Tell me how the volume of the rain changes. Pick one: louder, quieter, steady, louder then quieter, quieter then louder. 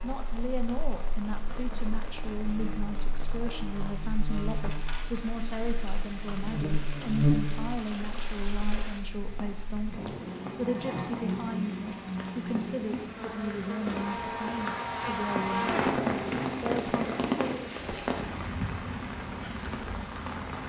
louder.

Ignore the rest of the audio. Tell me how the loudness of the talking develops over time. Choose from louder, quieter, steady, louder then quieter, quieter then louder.
steady.